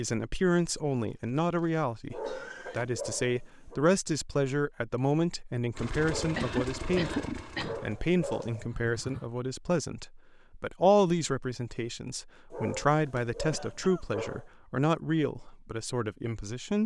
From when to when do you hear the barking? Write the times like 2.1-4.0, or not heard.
2.1-3.8, 6.0-8.7, 12.5-14.4.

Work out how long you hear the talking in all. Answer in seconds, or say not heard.
17 s.